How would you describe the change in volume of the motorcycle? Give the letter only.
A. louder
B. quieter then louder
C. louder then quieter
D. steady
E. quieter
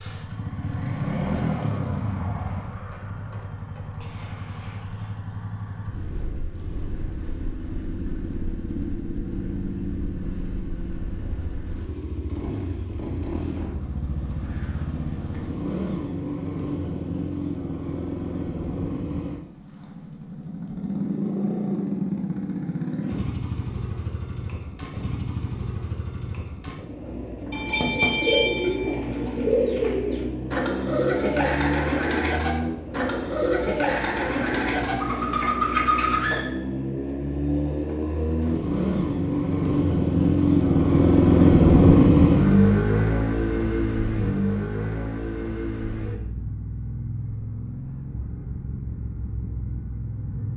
A.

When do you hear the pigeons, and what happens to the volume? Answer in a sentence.
The pigeons can be heard from 27.5 to 36.5 s, at a steady volume.